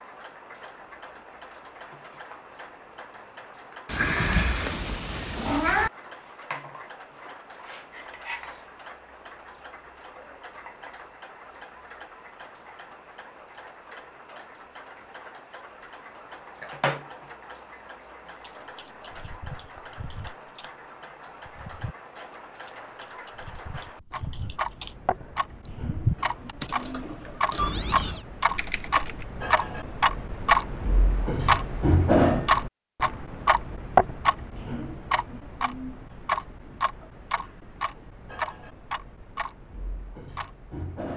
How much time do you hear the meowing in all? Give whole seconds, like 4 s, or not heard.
3 s.